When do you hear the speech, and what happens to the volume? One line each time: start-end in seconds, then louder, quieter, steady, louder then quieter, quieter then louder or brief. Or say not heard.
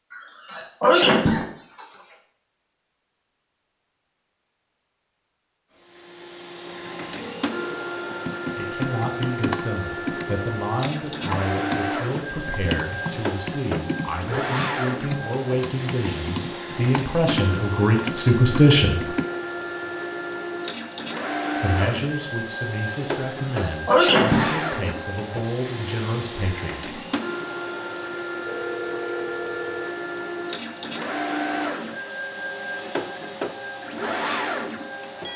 8.4-19.1 louder
21.6-26.9 steady.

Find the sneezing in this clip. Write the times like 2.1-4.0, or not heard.
0.1-1.9, 23.1-24.9.